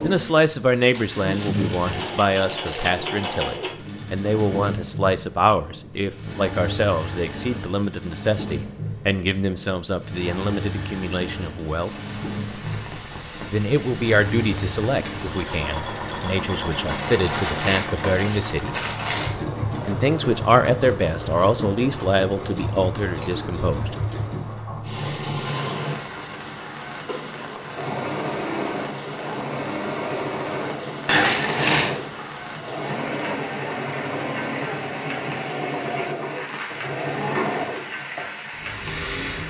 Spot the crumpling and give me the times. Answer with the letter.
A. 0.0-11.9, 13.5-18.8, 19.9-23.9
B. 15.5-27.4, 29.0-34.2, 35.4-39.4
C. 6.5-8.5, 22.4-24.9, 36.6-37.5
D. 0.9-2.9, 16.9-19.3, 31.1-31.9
D.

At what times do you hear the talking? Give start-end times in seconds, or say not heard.
0.0-11.9, 13.5-18.8, 19.9-23.9.